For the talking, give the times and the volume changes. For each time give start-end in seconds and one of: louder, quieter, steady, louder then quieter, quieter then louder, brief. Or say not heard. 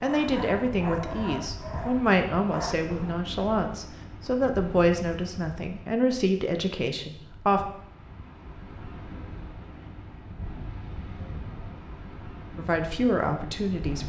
0.0-7.7 steady
12.6-14.0 brief.